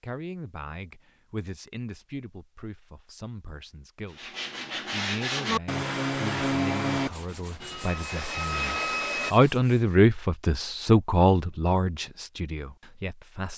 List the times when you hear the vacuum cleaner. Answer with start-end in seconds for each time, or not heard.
7.6-9.3.